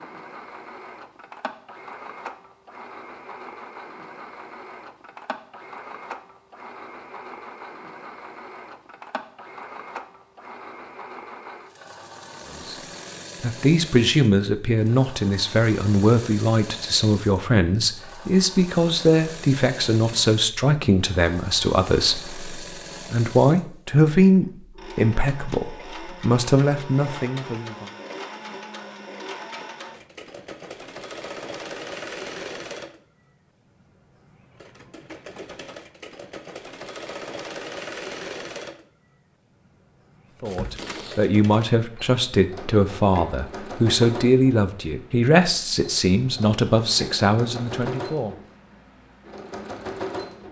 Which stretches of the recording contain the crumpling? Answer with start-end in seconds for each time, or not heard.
40.5-41.3.